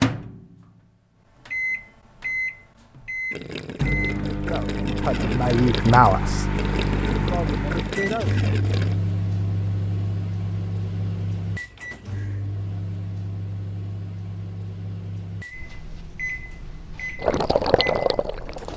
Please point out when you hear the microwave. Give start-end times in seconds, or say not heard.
0.0-18.7.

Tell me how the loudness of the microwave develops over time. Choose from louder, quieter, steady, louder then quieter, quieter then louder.
quieter.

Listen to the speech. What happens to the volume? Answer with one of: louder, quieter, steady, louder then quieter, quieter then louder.
louder then quieter.